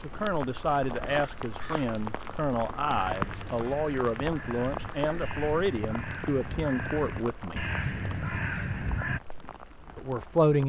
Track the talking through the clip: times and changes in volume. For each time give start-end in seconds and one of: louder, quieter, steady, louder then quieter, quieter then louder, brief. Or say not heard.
0.0-7.7 steady
9.9-10.6 brief.